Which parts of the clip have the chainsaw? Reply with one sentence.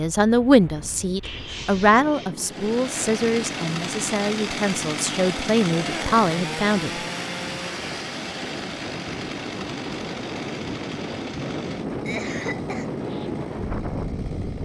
You can hear the chainsaw from 2.4 to 14.6 s.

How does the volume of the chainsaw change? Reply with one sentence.
The loudness of the chainsaw goes down.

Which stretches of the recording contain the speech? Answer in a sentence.
You can hear the speech from 0.0 to 6.9 s.